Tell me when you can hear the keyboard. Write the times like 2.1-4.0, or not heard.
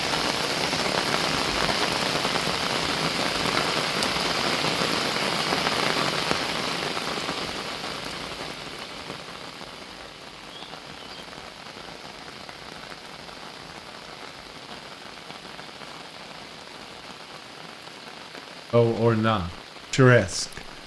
not heard.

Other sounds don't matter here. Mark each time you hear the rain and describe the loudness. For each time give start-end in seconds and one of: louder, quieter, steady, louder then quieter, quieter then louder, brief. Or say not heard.
0.0-20.8 quieter.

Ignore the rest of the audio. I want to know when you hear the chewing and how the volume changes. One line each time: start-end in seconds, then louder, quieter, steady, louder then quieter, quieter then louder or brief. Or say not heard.
not heard.